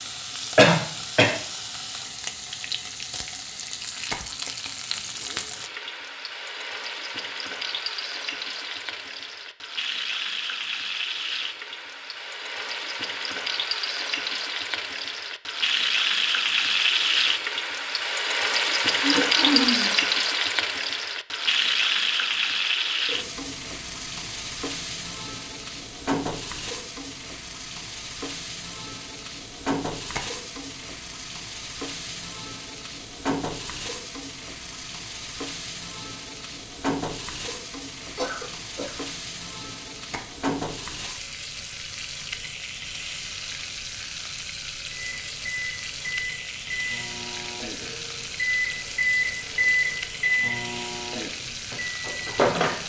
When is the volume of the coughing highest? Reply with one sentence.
The volume of the coughing peaks at 1 second.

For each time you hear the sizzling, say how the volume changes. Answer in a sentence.
You can hear the sizzling from 0.0 to 52.8 s, getting louder then quieter.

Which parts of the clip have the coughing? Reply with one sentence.
The coughing can be heard from 0.6 to 1.3 s, from 18.9 to 19.9 s and from 38.1 to 39.0 s.